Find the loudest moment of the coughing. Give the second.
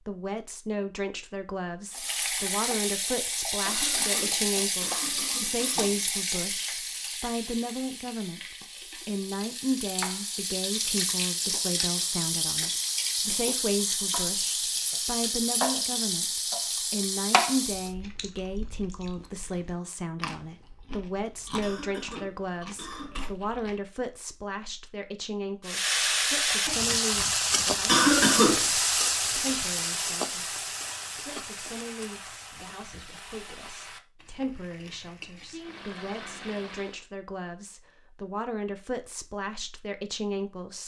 28 s.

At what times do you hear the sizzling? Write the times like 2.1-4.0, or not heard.
1.9-17.9, 25.6-37.0.